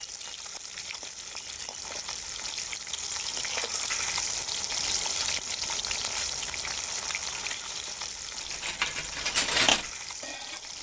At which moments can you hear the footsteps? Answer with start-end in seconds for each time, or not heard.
not heard.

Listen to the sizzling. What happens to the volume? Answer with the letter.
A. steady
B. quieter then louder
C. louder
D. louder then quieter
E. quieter
D.